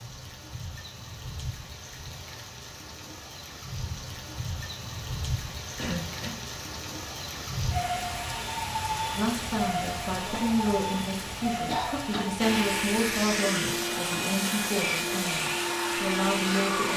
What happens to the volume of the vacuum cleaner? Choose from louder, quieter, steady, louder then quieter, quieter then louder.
steady.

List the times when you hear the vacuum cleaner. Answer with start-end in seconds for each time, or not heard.
12.3-16.9.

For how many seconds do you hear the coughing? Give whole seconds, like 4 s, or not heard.
2 s.